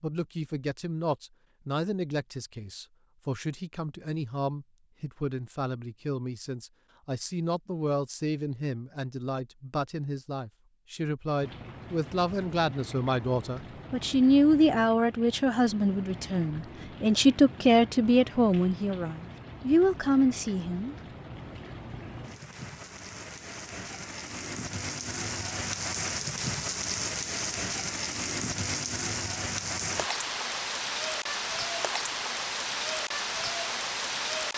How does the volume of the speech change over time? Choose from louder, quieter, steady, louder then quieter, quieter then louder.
louder.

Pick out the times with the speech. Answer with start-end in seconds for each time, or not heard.
0.0-20.9.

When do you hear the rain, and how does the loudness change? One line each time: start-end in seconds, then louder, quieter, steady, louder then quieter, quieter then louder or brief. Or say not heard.
11.4-34.5 louder.